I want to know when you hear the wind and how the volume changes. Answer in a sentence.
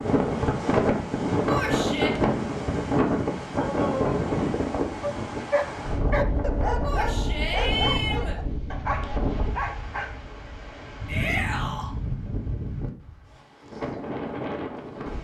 The wind can be heard from 0.0 to 15.1 s, getting quieter.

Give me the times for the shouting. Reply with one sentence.
The shouting can be heard from 1.4 to 2.1 s, from 6.8 to 8.3 s and from 11.1 to 11.9 s.